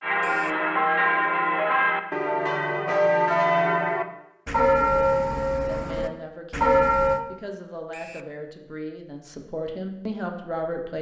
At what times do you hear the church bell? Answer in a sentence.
You can hear the church bell from 0.0 to 7.2 s.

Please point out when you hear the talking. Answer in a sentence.
The talking can be heard from 4.7 to 10.9 s.